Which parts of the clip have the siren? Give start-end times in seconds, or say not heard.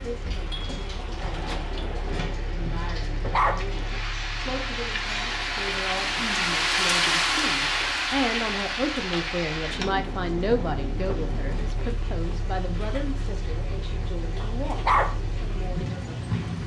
not heard.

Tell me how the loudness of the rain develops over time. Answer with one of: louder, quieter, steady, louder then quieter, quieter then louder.
louder then quieter.